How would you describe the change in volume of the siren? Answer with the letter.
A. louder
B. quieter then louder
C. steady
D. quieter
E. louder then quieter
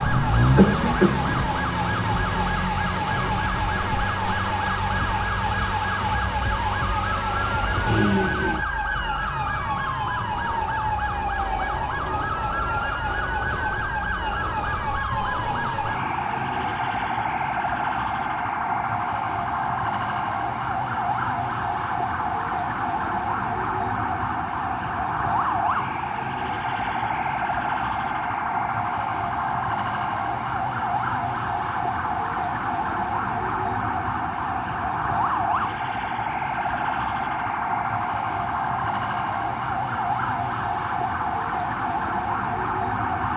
C.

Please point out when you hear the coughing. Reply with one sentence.
The coughing can be heard from 0.6 to 1.4 s.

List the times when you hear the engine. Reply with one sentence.
The engine can be heard from 0.0 to 8.7 s.